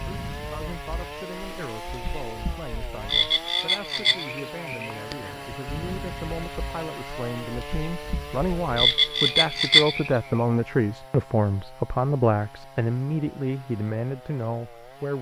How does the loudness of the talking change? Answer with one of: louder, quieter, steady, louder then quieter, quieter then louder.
louder.